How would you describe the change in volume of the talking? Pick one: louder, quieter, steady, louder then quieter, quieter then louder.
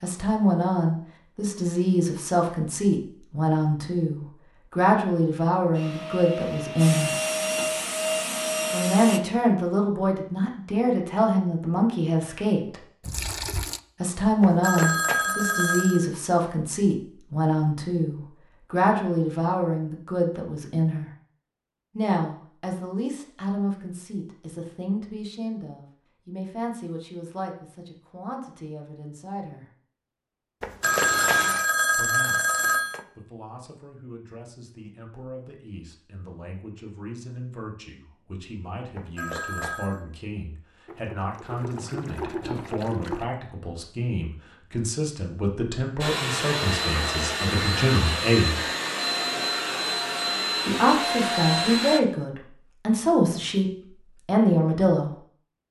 quieter then louder.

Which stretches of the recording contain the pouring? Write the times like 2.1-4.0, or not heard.
13.0-13.8, 30.8-31.7, 40.9-43.3.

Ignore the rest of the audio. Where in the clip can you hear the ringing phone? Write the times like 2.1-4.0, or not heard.
14.4-16.1, 30.6-33.0, 39.0-40.0.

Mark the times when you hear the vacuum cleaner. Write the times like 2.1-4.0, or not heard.
5.7-9.2, 46.0-52.0.